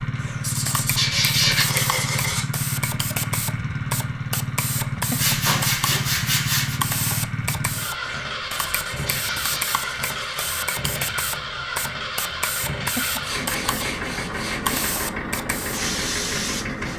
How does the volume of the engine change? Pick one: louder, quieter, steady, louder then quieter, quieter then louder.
steady.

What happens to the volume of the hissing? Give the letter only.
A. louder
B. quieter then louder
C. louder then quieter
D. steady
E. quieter
D.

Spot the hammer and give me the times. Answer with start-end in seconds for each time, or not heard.
not heard.